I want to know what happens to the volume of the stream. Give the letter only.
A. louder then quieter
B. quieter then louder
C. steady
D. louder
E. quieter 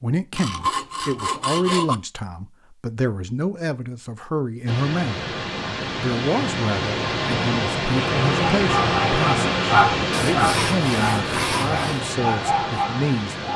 A.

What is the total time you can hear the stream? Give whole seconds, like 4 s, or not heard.
9 s.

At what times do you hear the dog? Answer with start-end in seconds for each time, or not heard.
8.6-13.5.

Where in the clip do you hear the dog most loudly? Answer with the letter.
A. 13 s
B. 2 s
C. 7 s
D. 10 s
D.